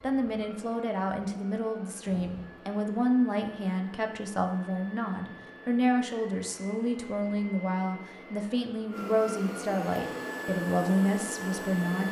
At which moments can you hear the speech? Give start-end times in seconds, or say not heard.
0.0-12.0.